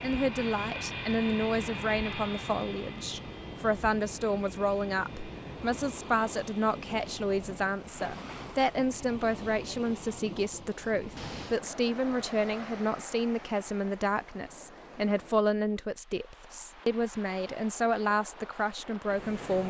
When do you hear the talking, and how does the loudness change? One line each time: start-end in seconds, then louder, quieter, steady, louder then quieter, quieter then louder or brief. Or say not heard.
0.0-19.6 steady.